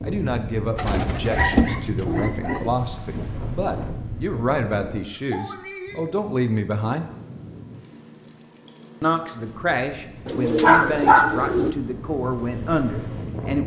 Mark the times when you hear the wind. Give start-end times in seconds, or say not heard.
0.0-13.6.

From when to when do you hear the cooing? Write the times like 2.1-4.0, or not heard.
0.8-2.7, 10.2-11.8.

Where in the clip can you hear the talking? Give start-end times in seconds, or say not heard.
0.0-7.0, 9.0-13.6.